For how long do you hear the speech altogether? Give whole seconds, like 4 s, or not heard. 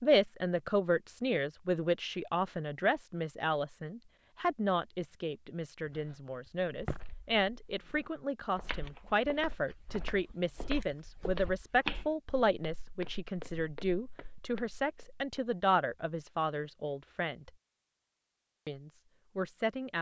19 s.